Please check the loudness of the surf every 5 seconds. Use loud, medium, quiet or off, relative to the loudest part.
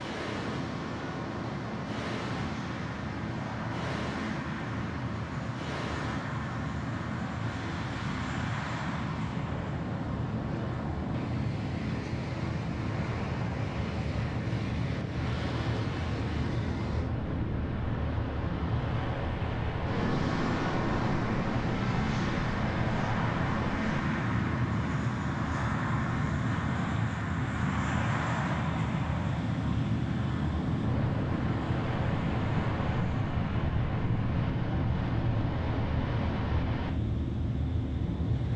loud, loud, loud, loud, loud, medium, loud, loud.